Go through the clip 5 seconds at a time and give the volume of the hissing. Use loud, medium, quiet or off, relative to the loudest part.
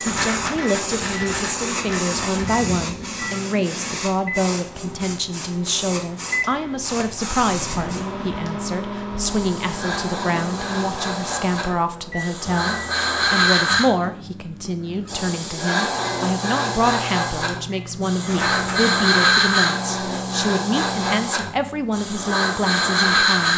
medium, medium, loud, loud, loud.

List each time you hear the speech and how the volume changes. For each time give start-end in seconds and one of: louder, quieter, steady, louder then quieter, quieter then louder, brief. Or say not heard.
0.0-23.5 steady.